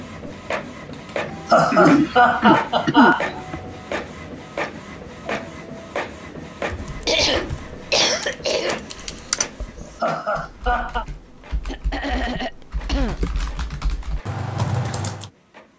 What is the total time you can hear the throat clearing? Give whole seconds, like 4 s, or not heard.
6 s.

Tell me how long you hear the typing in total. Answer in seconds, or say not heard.
9 s.